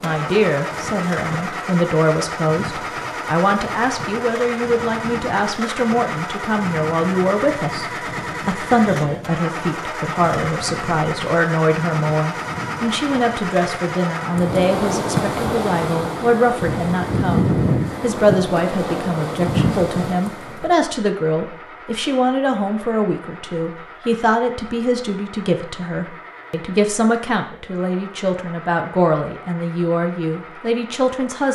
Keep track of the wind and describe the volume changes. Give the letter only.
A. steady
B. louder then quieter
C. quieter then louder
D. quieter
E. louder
E.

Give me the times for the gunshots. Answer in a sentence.
You can't hear the gunshots here.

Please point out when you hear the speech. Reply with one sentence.
The speech can be heard from 0.0 to 31.5 s.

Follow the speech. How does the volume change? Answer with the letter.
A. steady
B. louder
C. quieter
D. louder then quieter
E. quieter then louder
A.